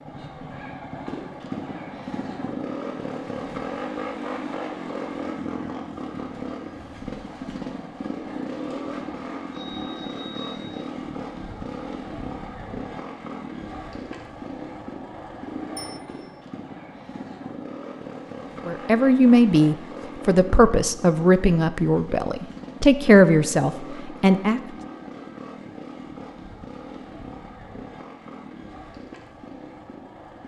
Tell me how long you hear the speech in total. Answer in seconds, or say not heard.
6 s.